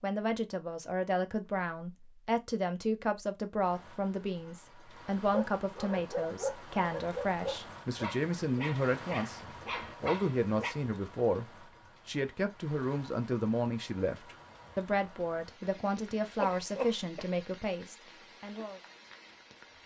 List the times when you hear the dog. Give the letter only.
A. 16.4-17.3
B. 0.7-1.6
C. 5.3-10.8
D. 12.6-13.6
C.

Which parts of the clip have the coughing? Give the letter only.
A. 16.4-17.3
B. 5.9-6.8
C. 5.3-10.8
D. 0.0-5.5
A.